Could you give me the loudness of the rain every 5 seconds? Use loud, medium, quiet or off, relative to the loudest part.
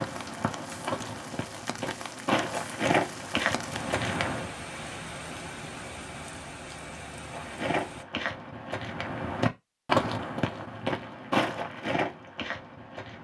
loud, loud, off.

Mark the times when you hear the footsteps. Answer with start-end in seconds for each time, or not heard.
0.0-4.5, 7.2-13.1.